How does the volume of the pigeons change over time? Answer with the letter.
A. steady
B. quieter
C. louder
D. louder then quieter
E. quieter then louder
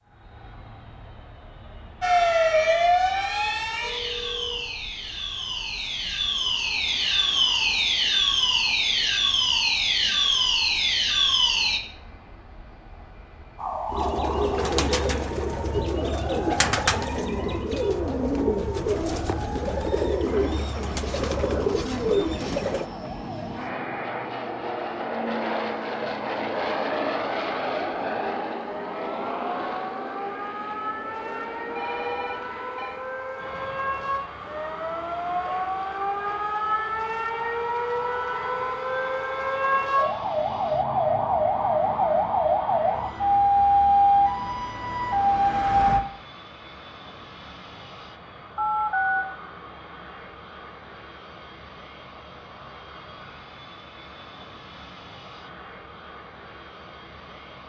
A.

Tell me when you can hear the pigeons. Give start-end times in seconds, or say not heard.
13.8-22.9.